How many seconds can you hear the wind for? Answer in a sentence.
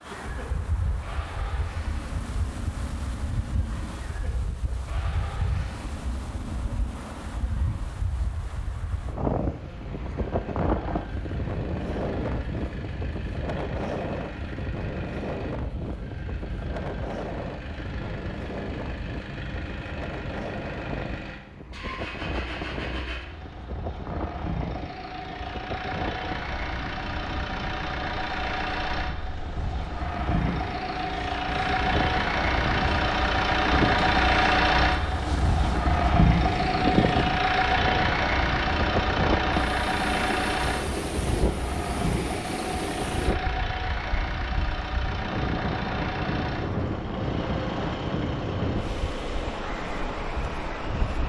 The wind can be heard for 51 seconds in total.